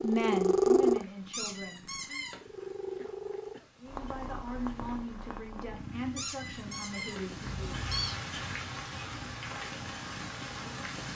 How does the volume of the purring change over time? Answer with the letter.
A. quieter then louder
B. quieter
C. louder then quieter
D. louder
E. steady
B.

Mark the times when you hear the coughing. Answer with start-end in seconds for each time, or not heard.
2.6-3.8, 7.5-8.2.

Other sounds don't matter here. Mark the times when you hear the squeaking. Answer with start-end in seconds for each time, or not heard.
1.3-2.5, 6.2-8.2.